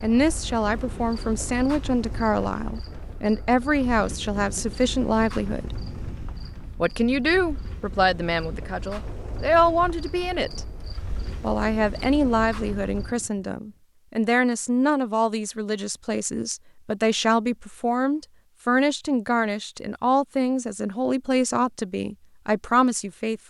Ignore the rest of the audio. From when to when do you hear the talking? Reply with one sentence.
You can hear the talking from 0.0 to 5.8 s, from 6.8 to 10.6 s and from 11.4 to 23.4 s.